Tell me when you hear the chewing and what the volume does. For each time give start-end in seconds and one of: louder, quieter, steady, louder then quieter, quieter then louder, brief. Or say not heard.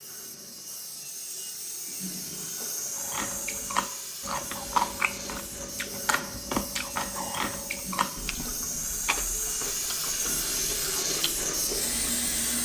3.0-12.2 quieter.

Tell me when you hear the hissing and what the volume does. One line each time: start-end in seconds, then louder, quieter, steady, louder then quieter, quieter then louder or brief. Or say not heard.
0.0-12.6 louder.